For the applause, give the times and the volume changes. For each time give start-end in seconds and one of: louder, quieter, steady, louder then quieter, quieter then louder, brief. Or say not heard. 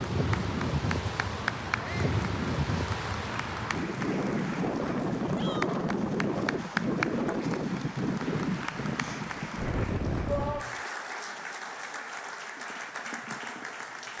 0.2-14.1 steady.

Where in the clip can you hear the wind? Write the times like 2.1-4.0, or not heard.
0.0-10.7.